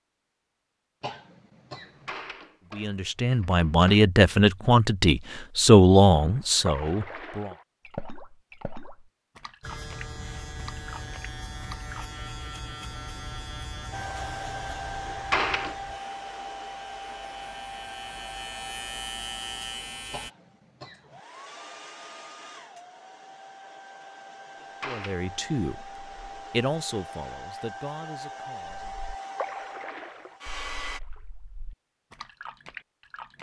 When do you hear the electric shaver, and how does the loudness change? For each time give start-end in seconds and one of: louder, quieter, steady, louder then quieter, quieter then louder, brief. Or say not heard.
9.6-20.3 quieter then louder.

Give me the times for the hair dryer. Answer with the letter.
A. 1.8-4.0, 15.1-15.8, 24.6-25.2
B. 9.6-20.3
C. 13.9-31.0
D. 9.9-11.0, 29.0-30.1
C.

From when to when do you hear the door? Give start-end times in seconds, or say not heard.
1.8-4.0, 15.1-15.8, 24.6-25.2.